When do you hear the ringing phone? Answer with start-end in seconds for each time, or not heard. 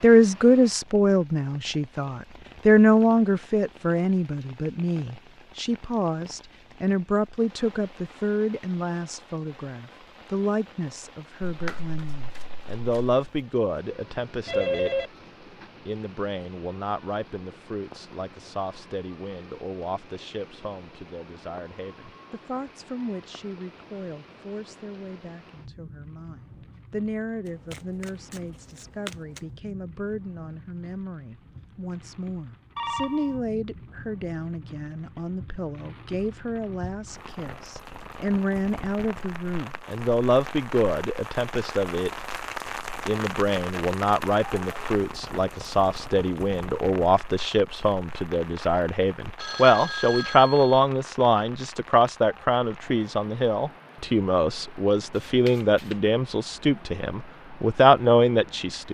14.4-15.1, 32.8-33.4, 49.4-50.8.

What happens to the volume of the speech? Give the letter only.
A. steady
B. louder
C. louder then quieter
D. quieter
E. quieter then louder
E.